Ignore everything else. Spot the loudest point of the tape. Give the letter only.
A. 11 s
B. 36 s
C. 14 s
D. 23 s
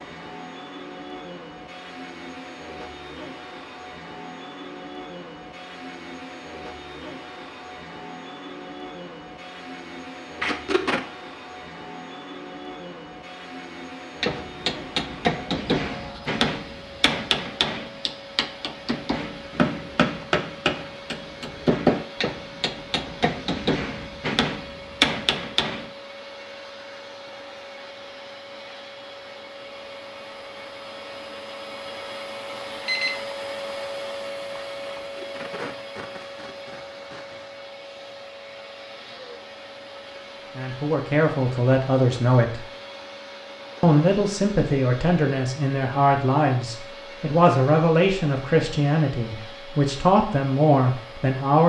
A.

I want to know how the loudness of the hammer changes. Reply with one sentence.
The volume of the hammer stays about the same.